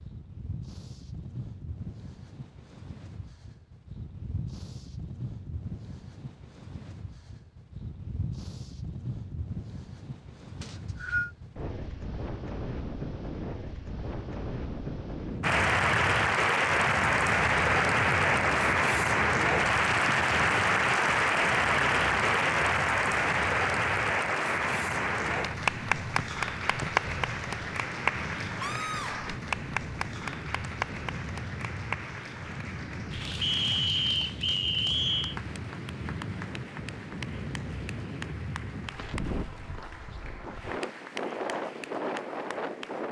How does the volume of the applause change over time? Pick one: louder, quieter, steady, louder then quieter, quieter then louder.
quieter.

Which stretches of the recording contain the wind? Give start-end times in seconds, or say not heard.
0.0-43.0.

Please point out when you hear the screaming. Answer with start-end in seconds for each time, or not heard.
28.6-29.4.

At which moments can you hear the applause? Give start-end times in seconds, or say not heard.
15.4-43.0.